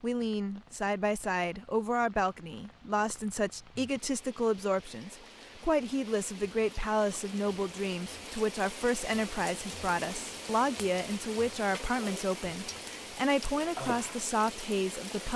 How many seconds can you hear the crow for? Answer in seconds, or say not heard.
not heard.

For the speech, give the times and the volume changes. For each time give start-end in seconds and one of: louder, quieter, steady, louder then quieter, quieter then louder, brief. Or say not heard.
0.0-15.3 steady.